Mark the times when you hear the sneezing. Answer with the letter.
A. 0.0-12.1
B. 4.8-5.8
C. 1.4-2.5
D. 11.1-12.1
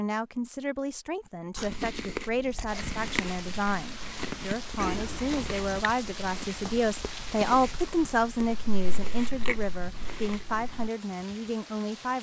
B.